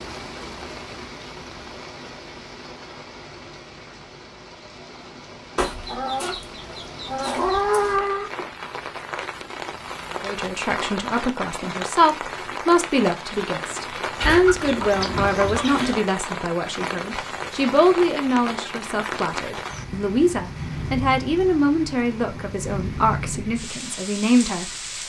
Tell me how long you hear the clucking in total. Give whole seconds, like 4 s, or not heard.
5 s.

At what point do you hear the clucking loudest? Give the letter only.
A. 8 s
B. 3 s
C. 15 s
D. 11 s
A.